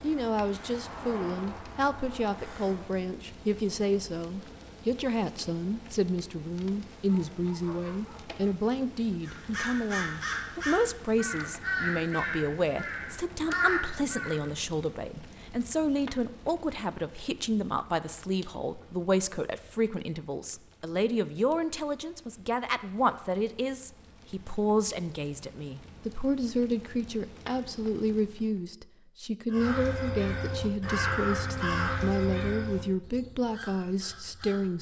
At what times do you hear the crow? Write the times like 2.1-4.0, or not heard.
0.0-3.0, 9.2-14.4, 29.5-34.7.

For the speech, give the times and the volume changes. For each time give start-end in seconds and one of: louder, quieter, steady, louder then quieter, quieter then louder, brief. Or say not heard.
0.0-34.7 steady.